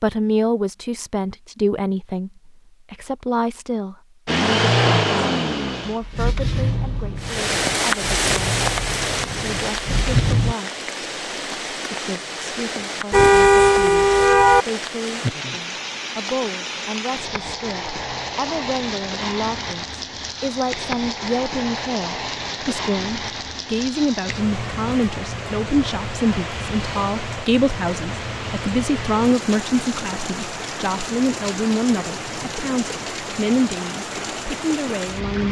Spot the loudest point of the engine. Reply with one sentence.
The volume of the engine peaks at 5 seconds.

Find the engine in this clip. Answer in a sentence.
The engine can be heard from 4.2 to 10.6 s.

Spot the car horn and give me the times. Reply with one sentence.
You can hear the car horn from 13.1 to 14.7 s.